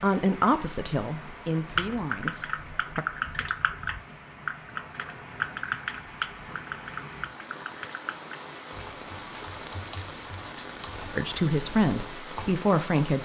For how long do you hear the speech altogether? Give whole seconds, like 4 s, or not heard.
5 s.